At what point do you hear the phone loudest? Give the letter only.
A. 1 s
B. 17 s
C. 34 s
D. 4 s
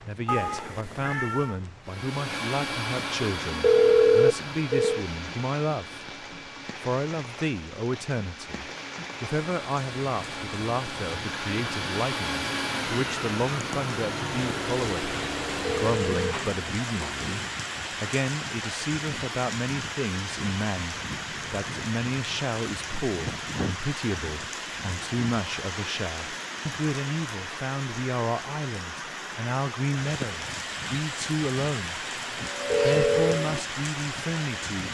D.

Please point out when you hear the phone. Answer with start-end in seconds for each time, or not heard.
3.6-5.0, 15.7-16.4, 32.7-33.4.